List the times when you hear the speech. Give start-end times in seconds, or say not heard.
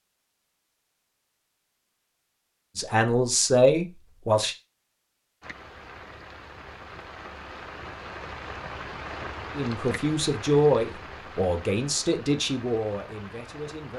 2.8-4.5, 9.6-13.9.